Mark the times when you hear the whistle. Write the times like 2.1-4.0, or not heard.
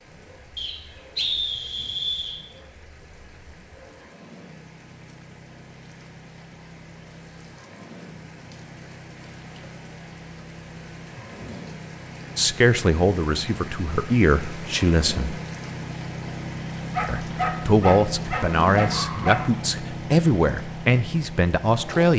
0.6-2.4.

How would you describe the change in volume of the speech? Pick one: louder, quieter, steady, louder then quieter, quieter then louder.
steady.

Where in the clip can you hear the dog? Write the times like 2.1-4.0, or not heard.
16.9-19.5.